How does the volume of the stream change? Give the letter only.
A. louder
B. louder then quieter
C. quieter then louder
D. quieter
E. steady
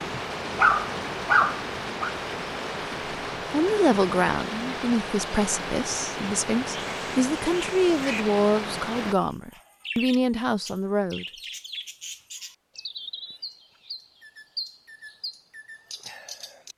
E.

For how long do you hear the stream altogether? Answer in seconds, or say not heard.
9 s.